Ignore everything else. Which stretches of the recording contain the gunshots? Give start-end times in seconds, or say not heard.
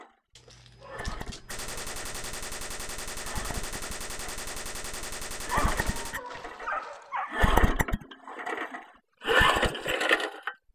1.5-6.2.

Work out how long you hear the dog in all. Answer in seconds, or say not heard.
4 s.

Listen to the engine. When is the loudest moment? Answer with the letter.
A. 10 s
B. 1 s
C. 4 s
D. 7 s
A.